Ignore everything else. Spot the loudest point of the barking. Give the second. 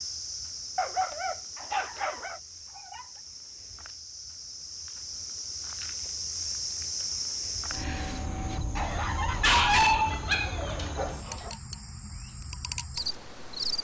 10 s.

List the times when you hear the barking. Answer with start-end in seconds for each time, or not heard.
0.8-2.4, 8.8-11.5.